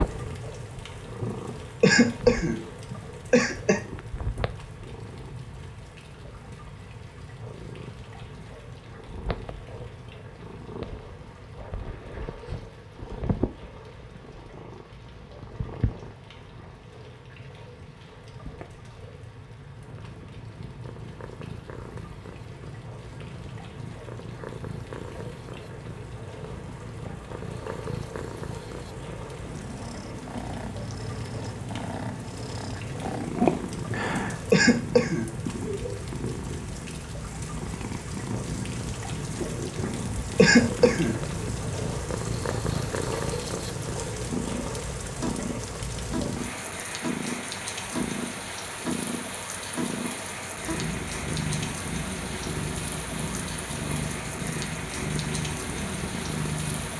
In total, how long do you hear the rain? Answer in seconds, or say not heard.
57 s.